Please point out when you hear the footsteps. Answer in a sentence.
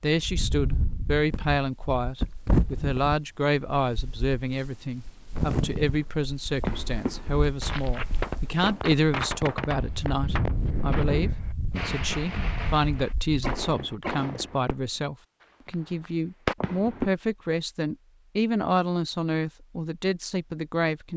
You can't hear the footsteps here.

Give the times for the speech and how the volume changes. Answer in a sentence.
You can hear the speech from 0.0 to 21.1 s, at a steady volume.